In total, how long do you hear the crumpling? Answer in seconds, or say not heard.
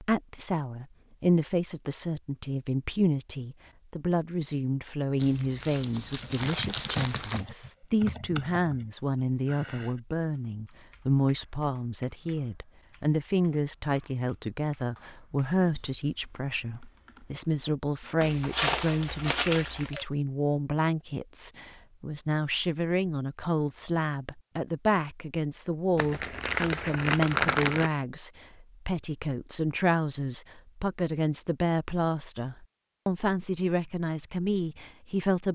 6 s.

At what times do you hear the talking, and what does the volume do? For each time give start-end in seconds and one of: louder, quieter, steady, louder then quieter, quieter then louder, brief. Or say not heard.
0.0-35.5 steady.